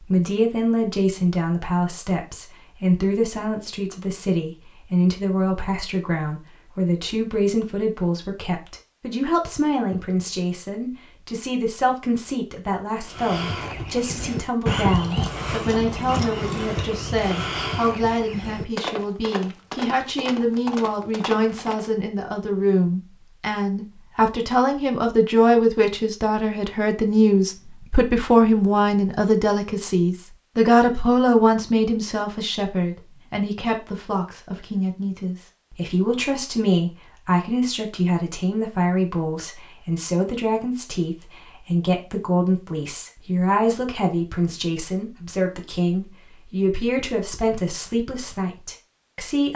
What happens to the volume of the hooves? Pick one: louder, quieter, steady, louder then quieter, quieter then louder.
quieter.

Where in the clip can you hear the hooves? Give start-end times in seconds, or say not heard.
13.0-21.9.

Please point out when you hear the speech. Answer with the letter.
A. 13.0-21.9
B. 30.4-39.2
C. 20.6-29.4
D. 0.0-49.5
D.